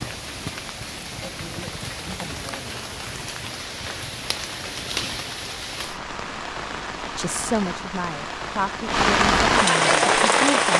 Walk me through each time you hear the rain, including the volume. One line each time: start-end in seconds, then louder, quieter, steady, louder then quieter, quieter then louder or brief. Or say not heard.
0.0-10.7 louder.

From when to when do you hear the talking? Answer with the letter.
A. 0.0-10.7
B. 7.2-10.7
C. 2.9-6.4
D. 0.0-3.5
B.